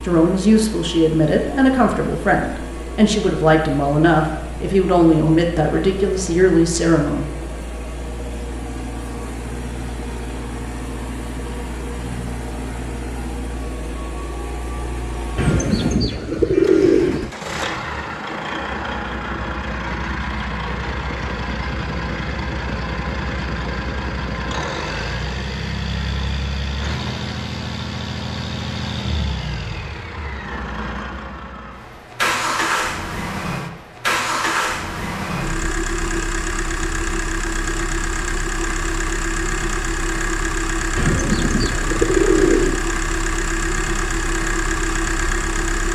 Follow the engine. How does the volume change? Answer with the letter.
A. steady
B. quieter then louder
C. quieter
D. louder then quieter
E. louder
E.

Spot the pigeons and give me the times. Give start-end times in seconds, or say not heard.
15.3-17.3, 41.0-42.9.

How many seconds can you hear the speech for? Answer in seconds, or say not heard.
7 s.